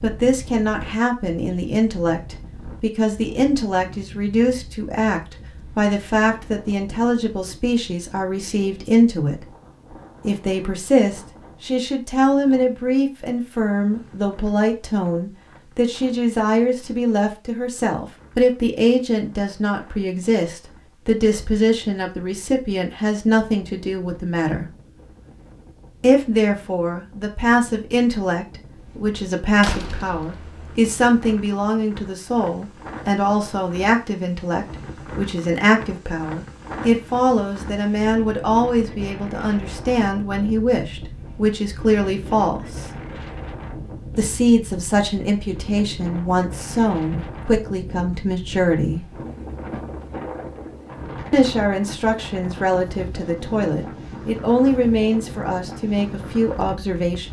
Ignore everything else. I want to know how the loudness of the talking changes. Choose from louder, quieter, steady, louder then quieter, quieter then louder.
steady.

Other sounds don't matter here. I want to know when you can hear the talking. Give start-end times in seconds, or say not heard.
0.0-9.5, 10.2-24.7, 26.0-42.9, 44.1-49.0, 51.3-57.2.